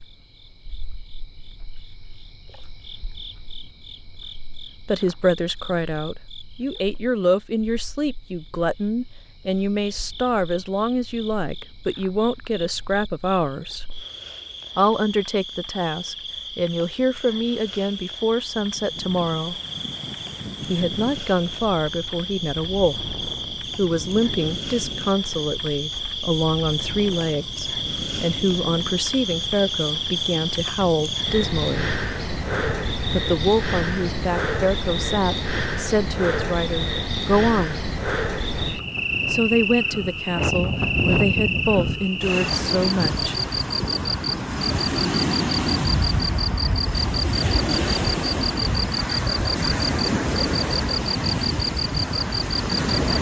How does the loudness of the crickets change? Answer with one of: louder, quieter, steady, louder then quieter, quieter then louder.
louder.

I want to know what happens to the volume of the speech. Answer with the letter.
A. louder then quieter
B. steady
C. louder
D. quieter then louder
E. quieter
B.